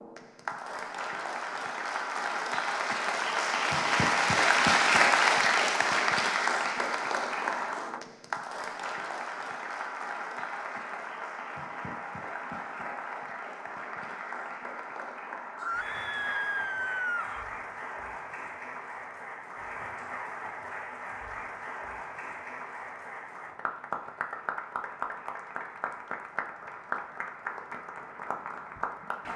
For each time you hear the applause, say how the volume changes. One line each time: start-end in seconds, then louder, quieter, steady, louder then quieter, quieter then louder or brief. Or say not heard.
0.0-29.3 quieter.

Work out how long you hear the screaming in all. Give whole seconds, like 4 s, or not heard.
2 s.